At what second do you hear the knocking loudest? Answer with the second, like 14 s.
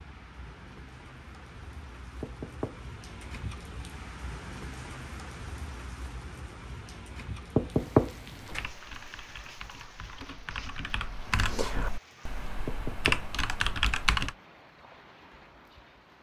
8 s.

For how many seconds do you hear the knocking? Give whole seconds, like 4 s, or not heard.
3 s.